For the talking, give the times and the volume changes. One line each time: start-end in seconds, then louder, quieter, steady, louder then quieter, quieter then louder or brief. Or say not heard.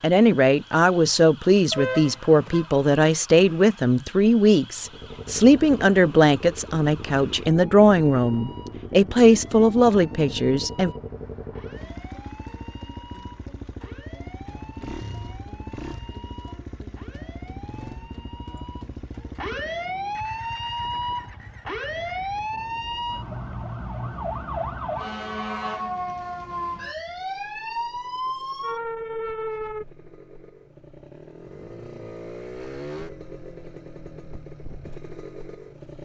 0.0-10.9 steady.